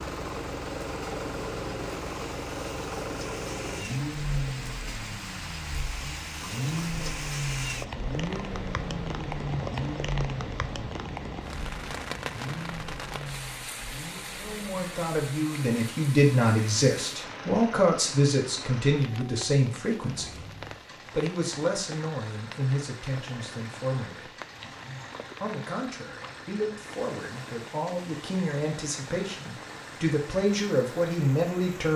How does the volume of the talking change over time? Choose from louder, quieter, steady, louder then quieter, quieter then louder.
quieter then louder.